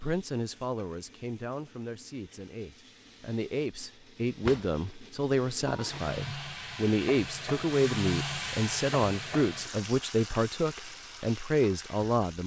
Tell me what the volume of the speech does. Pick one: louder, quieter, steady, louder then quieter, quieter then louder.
louder.